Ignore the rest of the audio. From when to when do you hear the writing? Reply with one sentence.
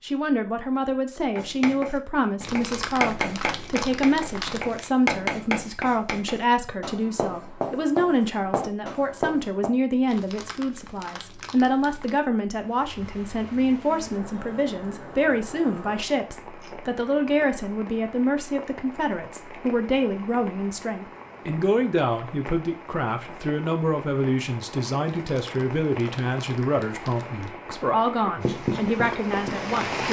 The writing can be heard from 1.4 to 9.7 s and from 28.4 to 30.0 s.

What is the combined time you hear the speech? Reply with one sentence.
The speech can be heard for 30 seconds in total.